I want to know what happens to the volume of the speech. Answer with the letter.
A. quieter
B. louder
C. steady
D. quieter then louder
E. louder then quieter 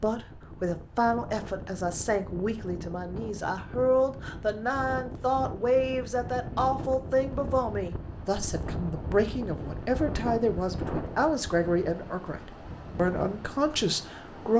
C.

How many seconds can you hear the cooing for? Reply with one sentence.
You can't hear the cooing here.